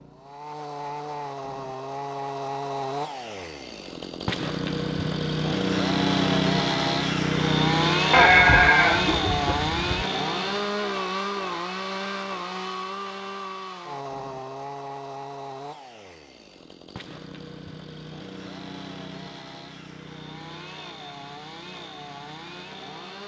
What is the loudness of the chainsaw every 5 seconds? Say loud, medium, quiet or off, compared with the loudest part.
medium, loud, medium, quiet, quiet.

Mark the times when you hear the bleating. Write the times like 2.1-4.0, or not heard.
8.1-10.1.